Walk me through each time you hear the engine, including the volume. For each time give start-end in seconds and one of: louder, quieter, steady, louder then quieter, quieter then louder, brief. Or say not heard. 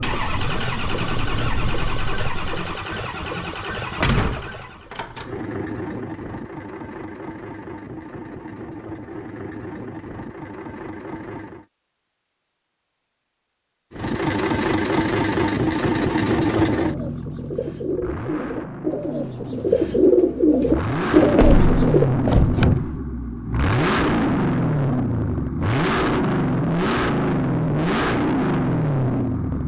0.0-11.7 quieter
13.9-29.6 quieter then louder.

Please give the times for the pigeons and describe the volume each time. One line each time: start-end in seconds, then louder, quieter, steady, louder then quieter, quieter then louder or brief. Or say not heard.
16.7-22.1 louder.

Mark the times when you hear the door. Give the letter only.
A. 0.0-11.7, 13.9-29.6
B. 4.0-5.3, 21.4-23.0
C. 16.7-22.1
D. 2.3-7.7
B.